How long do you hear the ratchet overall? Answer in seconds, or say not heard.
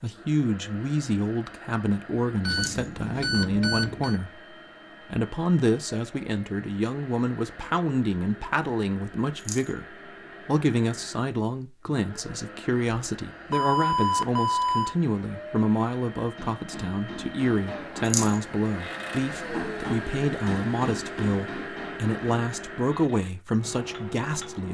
not heard.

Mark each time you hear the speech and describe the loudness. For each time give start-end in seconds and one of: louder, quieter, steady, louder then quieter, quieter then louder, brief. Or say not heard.
0.0-24.6 steady.